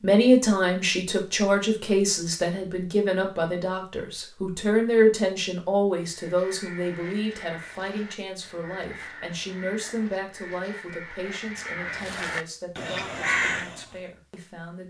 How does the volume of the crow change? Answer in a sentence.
The volume of the crow goes up.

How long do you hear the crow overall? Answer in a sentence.
The crow can be heard for 8 seconds in total.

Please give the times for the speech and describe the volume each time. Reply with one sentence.
The speech can be heard from 0.0 to 14.8 s, getting quieter.